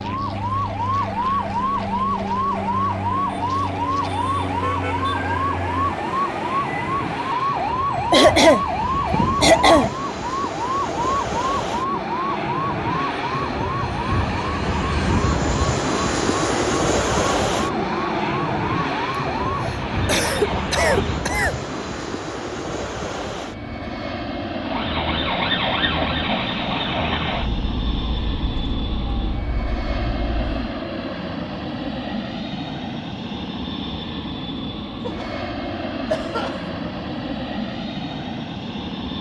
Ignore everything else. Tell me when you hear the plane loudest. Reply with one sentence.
The volume of the plane peaks at 17 seconds.